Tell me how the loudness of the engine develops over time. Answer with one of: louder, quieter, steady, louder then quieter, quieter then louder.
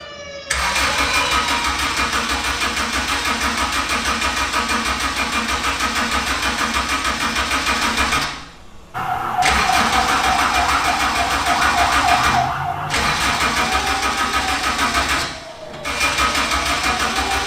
steady.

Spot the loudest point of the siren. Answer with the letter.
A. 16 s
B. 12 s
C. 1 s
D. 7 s
B.